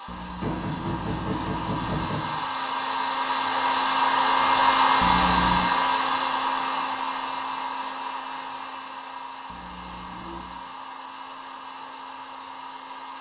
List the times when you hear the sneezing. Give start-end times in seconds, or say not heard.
not heard.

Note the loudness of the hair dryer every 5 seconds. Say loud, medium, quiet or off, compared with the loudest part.
loud, loud, quiet.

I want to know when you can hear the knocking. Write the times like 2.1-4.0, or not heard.
0.4-2.4.